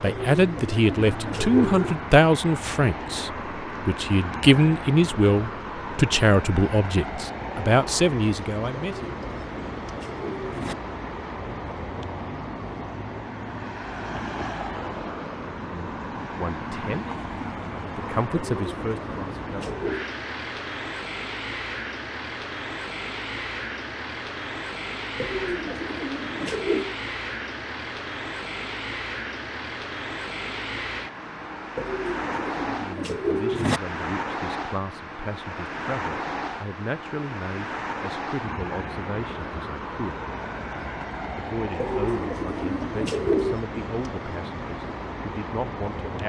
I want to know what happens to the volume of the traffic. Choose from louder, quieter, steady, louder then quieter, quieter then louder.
steady.